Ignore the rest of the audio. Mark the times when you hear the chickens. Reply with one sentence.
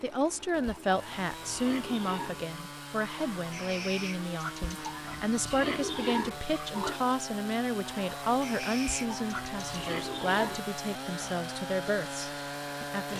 The chickens can be heard from 3.0 to 5.0 s and from 7.8 to 9.6 s.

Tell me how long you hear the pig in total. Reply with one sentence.
The pig can be heard for 6 seconds in total.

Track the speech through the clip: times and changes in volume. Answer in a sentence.
You can hear the speech from 0.0 to 13.1 s, at a steady volume.